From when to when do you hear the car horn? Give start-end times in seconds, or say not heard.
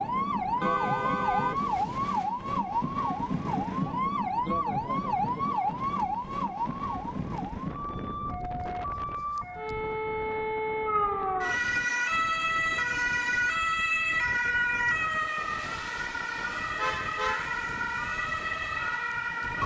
0.6-2.3, 16.8-17.6.